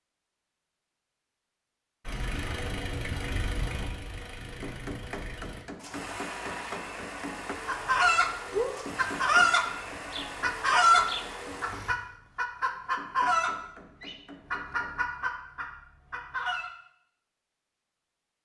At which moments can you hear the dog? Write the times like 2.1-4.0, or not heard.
not heard.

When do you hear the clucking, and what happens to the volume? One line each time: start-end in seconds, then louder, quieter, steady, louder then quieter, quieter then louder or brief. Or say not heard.
7.7-8.3 brief
8.9-16.7 quieter.